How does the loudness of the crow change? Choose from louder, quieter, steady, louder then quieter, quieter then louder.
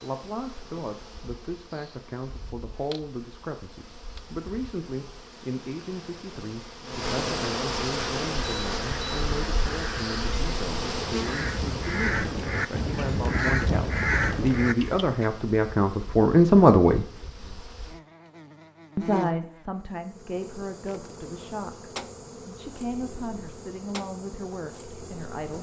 louder.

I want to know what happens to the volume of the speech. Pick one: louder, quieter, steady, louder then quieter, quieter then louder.
louder then quieter.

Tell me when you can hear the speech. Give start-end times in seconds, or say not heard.
0.0-17.1, 18.9-25.5.